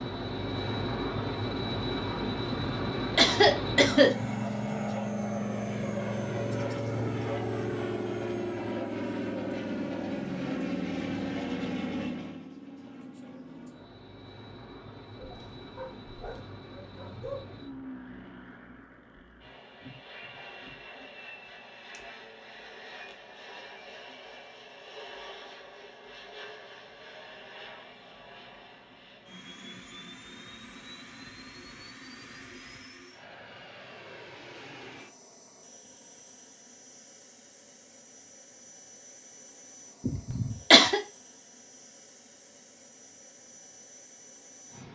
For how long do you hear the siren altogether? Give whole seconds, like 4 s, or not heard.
not heard.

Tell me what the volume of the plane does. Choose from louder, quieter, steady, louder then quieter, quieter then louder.
quieter.